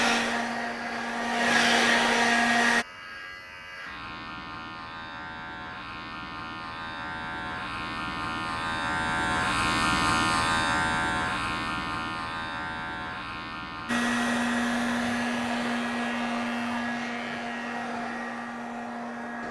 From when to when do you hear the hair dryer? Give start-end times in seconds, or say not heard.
0.0-2.9, 13.8-19.4.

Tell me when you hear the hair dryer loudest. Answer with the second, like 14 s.
2 s.